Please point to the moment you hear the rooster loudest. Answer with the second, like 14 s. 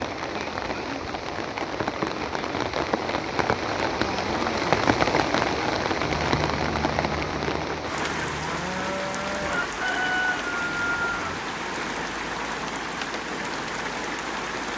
10 s.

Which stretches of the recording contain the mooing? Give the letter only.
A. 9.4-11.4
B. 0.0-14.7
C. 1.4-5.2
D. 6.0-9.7
D.